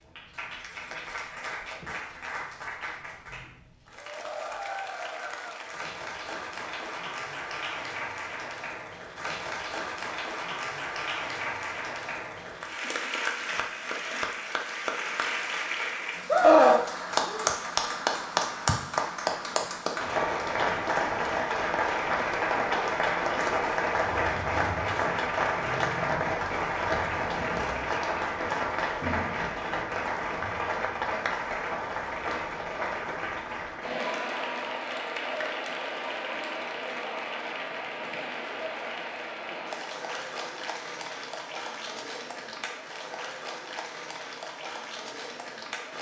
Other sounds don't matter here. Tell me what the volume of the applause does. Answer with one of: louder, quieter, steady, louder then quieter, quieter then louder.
louder then quieter.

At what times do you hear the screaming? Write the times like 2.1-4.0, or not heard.
16.3-17.5.